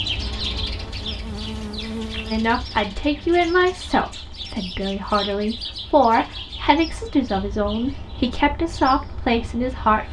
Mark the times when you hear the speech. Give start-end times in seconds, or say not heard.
2.3-10.0.